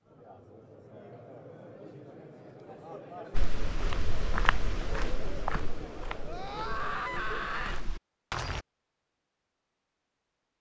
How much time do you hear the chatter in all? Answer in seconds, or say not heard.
8 s.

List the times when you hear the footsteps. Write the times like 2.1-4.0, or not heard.
3.4-8.6.